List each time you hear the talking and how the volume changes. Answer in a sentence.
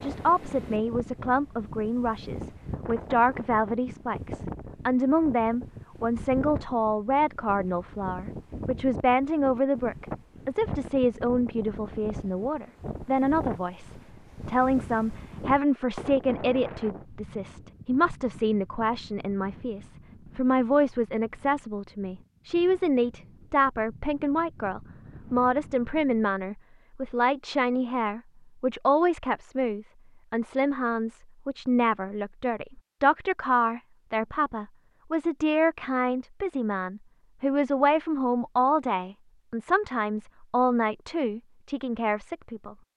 The talking can be heard from 0.0 to 42.8 s, at a steady volume.